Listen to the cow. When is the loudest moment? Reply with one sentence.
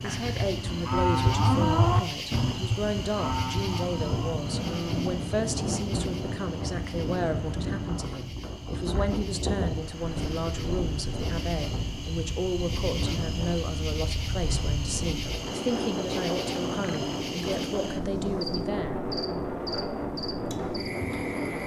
The loudest moment of the cow is at 2 seconds.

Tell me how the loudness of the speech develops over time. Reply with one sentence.
The loudness of the speech stays about the same.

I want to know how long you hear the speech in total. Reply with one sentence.
The speech can be heard for 19 seconds in total.